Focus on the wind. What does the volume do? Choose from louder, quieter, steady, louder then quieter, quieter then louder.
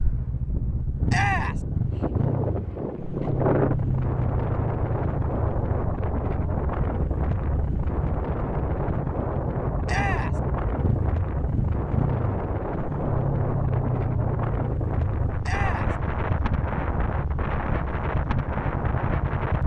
steady.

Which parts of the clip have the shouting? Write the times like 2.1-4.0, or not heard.
1.1-1.6, 9.8-10.4, 15.4-15.9.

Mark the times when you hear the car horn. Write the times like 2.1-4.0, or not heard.
not heard.